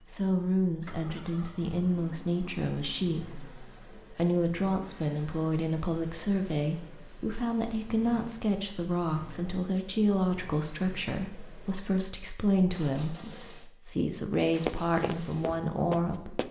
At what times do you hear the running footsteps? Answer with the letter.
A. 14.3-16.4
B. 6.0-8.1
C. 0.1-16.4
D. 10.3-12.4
A.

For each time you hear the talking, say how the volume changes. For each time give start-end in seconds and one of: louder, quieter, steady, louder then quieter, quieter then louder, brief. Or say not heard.
0.1-16.4 steady.